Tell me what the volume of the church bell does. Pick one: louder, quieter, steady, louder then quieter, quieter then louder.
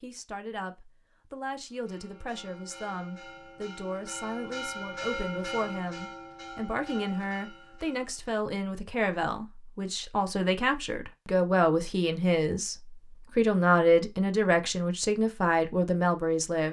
louder then quieter.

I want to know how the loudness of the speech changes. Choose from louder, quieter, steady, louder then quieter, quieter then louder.
louder.